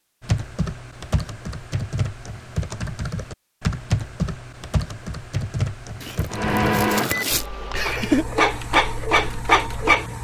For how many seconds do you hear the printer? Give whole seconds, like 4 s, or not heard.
4 s.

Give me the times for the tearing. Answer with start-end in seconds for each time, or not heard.
6.0-7.5.